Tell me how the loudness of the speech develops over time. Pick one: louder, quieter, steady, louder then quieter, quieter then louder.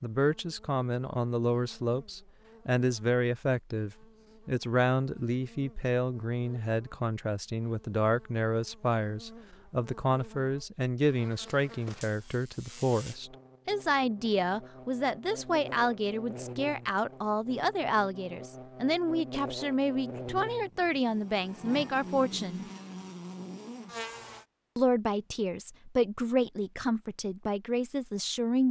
steady.